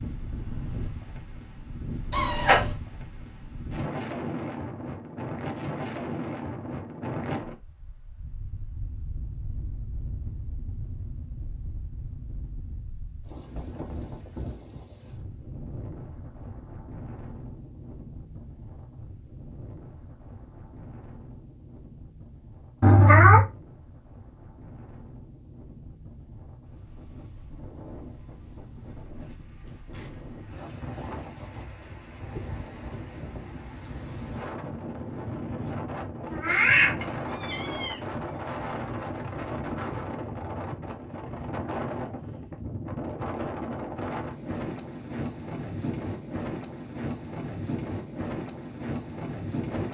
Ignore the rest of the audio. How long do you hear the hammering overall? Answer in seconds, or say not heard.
not heard.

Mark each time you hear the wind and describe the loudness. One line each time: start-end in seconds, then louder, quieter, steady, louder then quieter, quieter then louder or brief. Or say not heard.
0.0-49.8 quieter then louder.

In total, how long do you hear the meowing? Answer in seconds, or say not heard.
3 s.